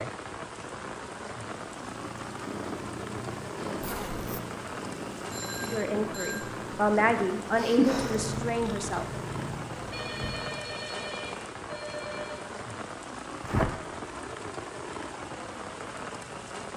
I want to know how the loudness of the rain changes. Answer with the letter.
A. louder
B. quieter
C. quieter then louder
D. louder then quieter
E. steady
E.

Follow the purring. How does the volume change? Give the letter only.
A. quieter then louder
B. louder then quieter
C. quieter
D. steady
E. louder
B.